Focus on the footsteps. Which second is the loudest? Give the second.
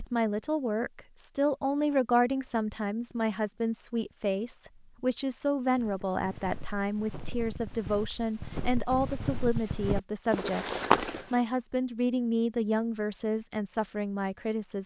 11 s.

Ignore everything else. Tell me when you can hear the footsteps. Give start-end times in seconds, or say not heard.
5.8-11.4.